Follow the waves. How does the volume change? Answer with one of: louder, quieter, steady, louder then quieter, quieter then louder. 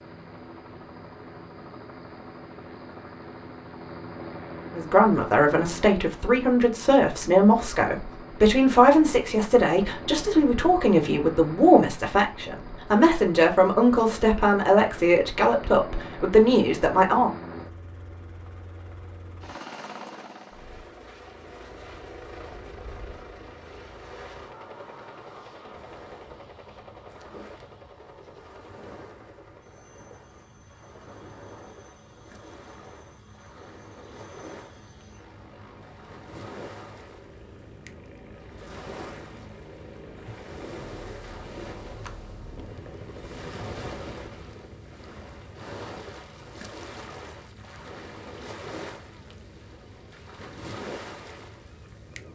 louder.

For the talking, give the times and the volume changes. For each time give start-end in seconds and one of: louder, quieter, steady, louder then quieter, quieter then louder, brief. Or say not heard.
4.8-17.3 steady.